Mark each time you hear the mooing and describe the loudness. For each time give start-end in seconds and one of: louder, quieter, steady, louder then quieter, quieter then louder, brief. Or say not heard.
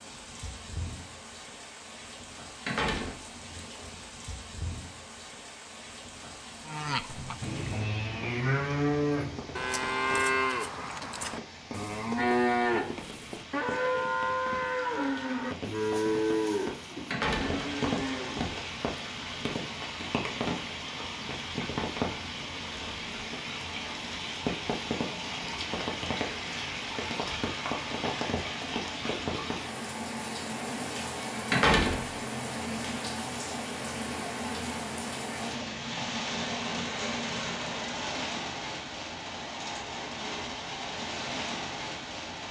6.7-18.6 steady.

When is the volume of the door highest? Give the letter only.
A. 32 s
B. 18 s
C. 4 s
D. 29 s
A.